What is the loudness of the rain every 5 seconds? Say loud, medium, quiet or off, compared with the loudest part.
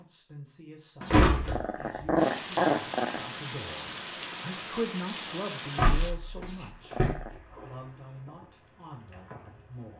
loud, medium.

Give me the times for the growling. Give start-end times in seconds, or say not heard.
1.0-3.2, 6.4-7.4.